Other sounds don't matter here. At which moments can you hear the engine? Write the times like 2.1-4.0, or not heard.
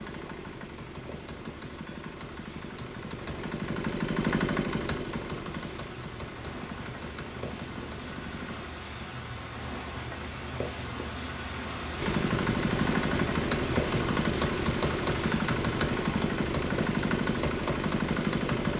0.0-8.7, 12.0-18.7.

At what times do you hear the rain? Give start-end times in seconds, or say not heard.
0.0-18.7.